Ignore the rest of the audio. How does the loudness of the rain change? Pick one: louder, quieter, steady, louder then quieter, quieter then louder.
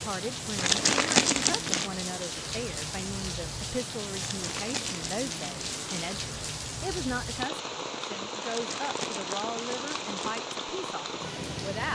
steady.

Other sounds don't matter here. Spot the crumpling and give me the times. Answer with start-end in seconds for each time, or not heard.
0.6-1.9, 4.2-6.2, 8.4-10.4.